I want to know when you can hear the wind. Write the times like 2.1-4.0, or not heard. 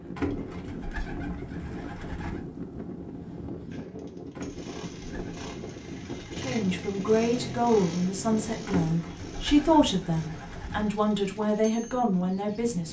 0.0-12.8.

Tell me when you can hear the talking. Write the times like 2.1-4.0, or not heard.
6.3-12.8.